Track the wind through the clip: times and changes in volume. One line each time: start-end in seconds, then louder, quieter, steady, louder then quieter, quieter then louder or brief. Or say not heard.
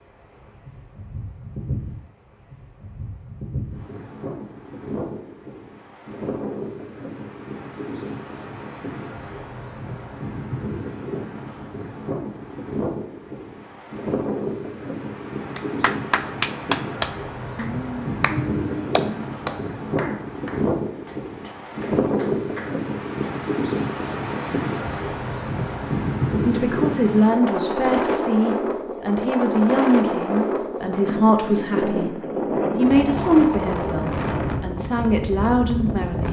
0.0-36.2 louder.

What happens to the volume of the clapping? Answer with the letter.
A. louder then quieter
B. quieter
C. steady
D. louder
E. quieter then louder
B.